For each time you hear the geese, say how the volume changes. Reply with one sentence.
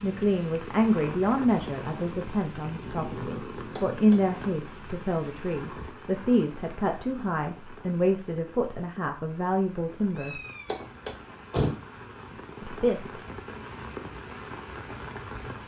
The geese can't be heard in this clip.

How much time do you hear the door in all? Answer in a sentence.
The door can be heard for 2 seconds in total.